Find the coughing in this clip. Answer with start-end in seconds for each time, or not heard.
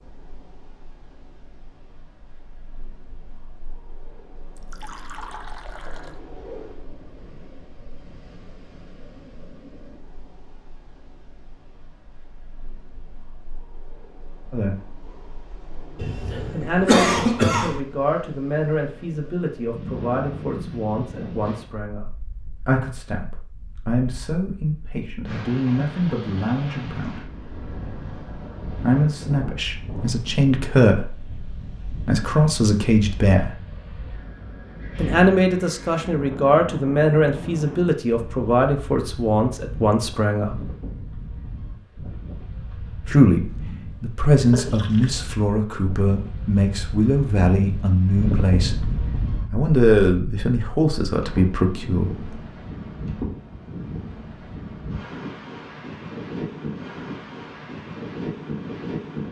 15.9-17.8.